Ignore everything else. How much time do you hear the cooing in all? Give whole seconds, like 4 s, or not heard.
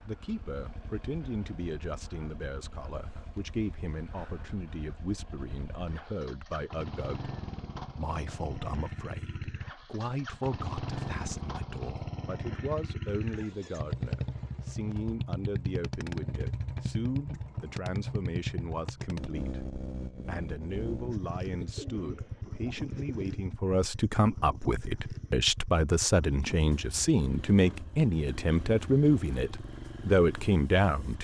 2 s.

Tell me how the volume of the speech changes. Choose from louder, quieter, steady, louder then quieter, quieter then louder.
louder.